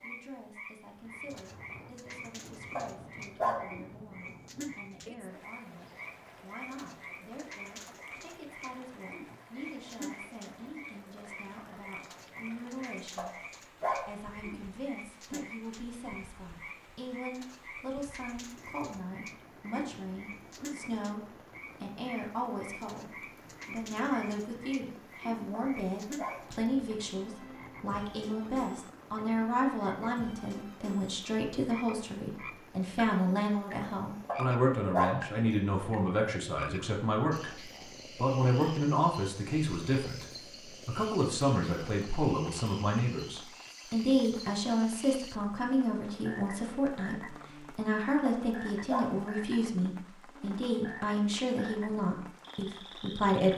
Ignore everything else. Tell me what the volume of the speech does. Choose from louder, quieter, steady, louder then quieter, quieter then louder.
louder.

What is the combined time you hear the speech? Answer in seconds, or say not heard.
53 s.